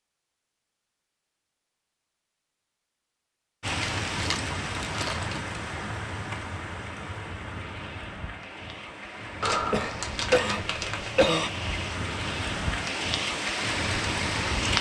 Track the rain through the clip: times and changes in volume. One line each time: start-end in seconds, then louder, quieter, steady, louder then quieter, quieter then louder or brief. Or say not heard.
3.6-14.7 quieter then louder.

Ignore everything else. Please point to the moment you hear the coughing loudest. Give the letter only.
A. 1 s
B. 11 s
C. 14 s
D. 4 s
B.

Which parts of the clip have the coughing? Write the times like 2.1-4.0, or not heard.
9.5-11.5.